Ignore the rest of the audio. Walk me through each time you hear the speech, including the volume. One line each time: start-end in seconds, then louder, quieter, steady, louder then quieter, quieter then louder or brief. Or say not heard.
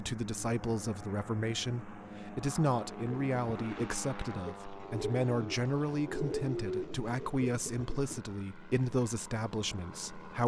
0.0-10.4 steady.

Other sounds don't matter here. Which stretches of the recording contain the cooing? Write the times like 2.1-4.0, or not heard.
3.0-8.3.